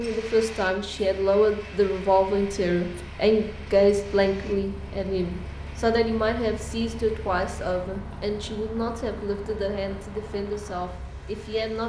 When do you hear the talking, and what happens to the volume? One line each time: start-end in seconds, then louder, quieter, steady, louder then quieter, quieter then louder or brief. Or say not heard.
0.0-11.8 quieter.